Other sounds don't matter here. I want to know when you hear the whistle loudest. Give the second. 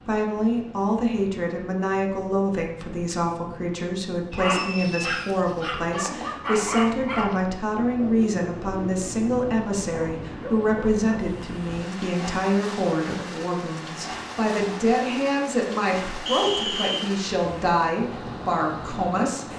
17 s.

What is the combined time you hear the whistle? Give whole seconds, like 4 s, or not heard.
2 s.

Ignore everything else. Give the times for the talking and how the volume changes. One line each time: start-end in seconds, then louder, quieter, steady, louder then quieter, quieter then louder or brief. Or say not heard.
0.1-19.4 steady.